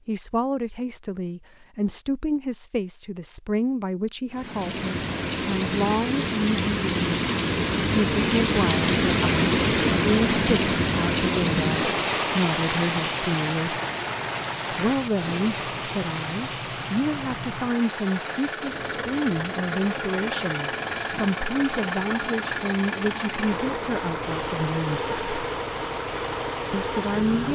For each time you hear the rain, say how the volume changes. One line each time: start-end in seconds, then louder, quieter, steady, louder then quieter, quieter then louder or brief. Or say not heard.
4.3-27.5 quieter.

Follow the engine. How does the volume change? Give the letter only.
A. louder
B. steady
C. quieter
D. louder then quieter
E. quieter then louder
A.